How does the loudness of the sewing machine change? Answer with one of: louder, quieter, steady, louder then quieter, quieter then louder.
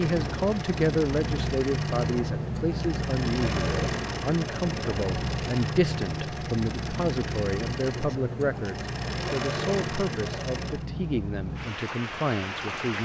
steady.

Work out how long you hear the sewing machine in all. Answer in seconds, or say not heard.
11 s.